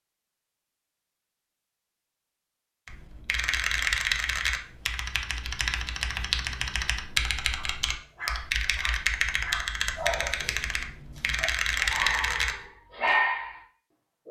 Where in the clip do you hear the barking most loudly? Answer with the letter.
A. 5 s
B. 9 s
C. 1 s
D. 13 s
D.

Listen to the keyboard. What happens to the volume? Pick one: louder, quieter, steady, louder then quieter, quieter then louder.
steady.